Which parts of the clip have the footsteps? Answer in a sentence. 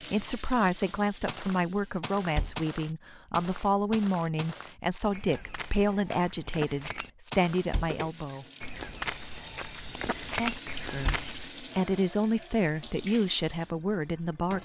You can hear the footsteps from 0.8 to 11.5 s.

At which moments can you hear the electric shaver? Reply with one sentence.
The electric shaver can't be heard in this clip.